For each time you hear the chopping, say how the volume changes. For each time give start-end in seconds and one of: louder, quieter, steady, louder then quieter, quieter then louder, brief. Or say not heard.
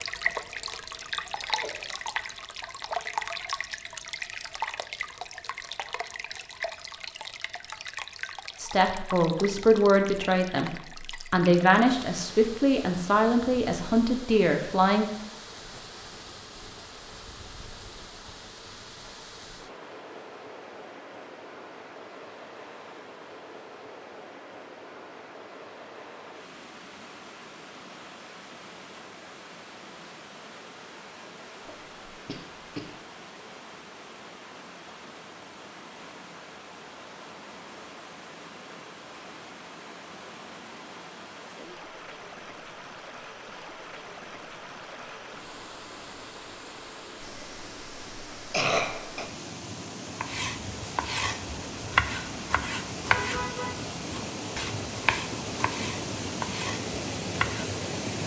50.2-57.8 louder then quieter.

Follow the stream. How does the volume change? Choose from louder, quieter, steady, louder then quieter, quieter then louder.
quieter then louder.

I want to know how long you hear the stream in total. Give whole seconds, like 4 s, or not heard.
58 s.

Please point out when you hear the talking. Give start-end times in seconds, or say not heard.
8.6-15.1.